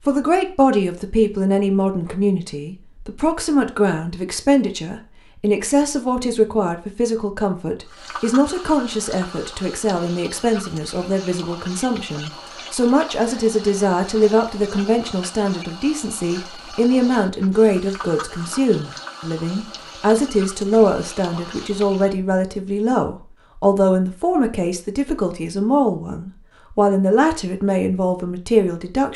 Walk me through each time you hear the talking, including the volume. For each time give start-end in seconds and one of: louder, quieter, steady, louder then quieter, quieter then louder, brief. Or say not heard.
0.1-29.1 steady.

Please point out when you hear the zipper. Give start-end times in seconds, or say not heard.
not heard.